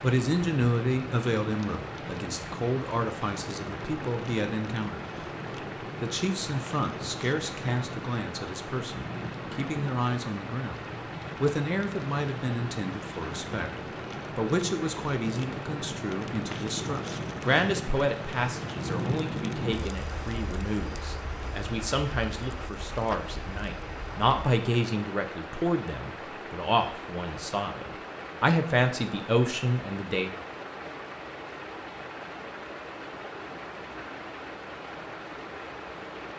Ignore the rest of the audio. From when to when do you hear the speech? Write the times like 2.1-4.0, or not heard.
0.0-5.0, 6.0-10.8, 11.4-30.3.